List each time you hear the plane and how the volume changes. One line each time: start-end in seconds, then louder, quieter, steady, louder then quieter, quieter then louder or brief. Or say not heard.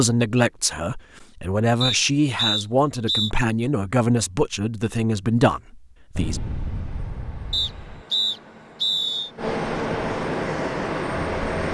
6.2-11.6 louder.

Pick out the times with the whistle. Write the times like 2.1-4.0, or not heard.
1.8-3.3, 7.5-9.3.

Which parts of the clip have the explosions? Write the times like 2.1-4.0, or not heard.
6.2-8.1.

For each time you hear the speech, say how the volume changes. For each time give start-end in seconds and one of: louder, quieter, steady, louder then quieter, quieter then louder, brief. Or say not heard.
0.0-6.4 steady.